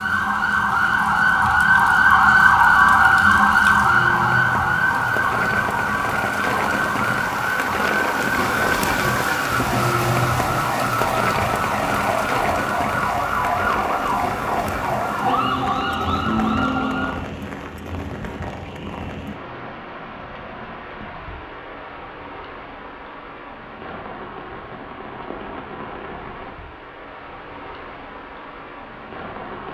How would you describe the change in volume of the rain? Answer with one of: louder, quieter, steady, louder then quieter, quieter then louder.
louder then quieter.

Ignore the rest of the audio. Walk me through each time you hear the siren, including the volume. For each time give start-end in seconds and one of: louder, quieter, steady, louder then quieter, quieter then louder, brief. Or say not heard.
0.0-17.1 quieter.